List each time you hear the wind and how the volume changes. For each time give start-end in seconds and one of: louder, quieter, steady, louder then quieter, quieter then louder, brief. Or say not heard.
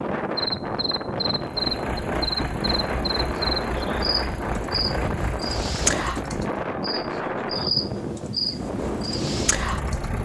0.0-10.2 steady.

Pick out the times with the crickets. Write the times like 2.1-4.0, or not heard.
0.1-10.1.